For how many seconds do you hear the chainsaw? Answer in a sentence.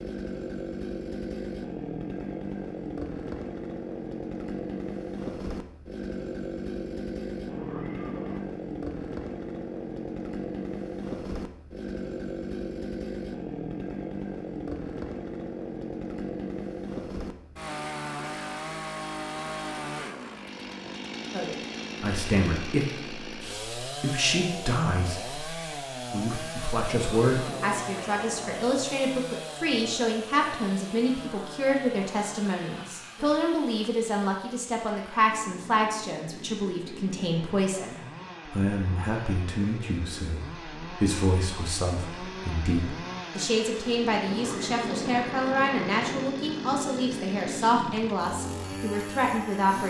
You can hear the chainsaw for 50 seconds altogether.